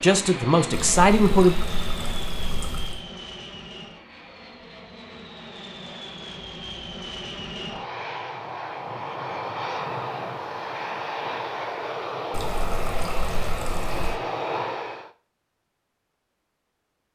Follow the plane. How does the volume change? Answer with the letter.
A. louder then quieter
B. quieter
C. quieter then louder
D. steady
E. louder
C.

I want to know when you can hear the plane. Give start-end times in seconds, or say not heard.
0.0-15.1.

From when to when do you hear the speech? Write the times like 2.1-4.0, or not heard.
0.0-1.6.